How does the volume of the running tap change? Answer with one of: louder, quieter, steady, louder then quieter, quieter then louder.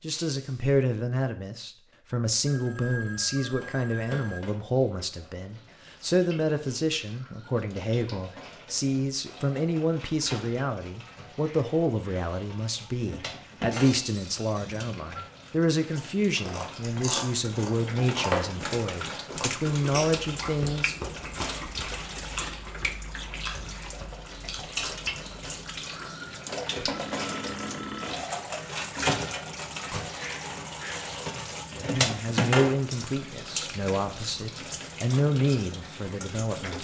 louder.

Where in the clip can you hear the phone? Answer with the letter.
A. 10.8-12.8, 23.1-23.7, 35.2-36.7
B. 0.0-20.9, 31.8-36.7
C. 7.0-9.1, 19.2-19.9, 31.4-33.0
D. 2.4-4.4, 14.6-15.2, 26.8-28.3
D.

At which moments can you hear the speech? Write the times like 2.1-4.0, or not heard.
0.0-20.9, 31.8-36.7.